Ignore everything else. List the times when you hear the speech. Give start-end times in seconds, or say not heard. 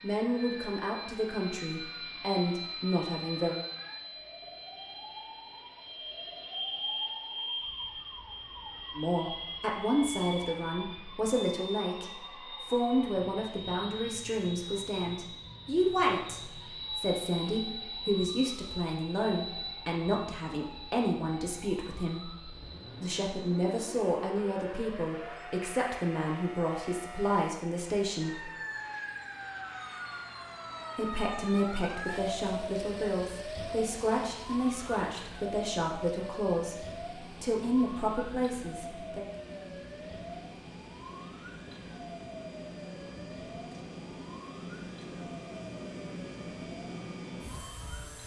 0.0-3.5, 8.9-22.3, 23.0-28.5, 30.9-39.2.